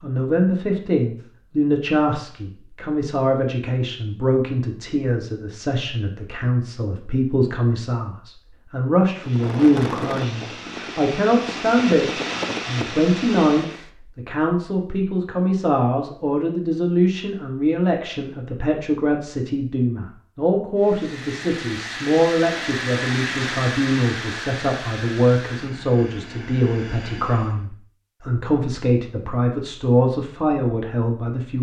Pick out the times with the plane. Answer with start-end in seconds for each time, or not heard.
9.1-13.9, 20.8-27.6.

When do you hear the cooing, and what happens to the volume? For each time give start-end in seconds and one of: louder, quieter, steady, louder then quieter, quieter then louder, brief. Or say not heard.
not heard.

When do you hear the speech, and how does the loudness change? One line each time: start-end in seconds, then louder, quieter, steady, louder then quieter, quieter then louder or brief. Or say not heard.
0.0-31.5 steady.